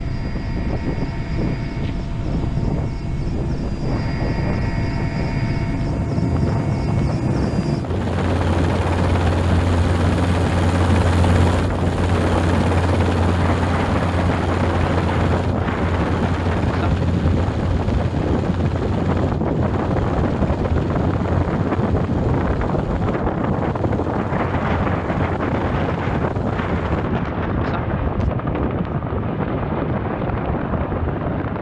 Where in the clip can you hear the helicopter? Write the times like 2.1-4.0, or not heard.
0.0-31.5.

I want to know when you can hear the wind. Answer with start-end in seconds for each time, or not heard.
0.0-31.5.